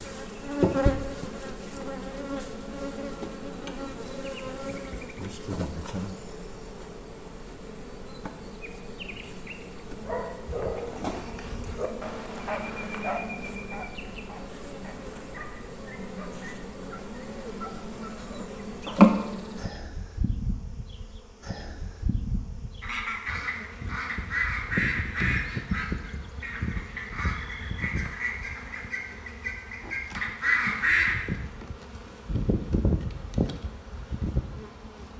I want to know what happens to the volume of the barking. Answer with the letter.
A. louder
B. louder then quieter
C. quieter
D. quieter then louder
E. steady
C.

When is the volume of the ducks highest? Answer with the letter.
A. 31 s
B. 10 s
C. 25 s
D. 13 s
A.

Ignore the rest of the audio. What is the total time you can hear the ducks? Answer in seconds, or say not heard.
8 s.